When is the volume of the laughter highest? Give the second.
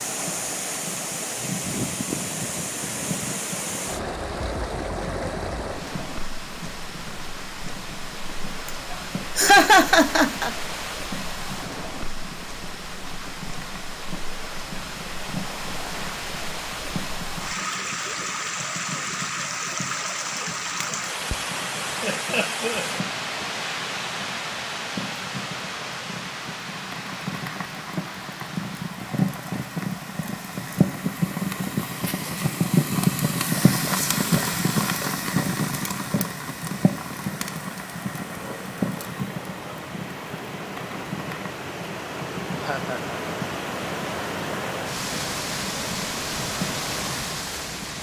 10 s.